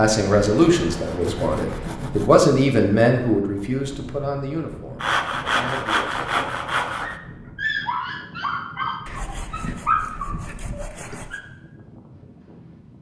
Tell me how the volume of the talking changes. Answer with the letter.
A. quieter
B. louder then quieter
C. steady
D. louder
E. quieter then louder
A.